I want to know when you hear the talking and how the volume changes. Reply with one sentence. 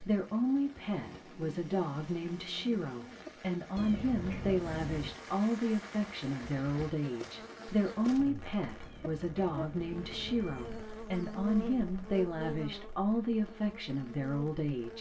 You can hear the talking from 0.0 to 14.9 s, at a steady volume.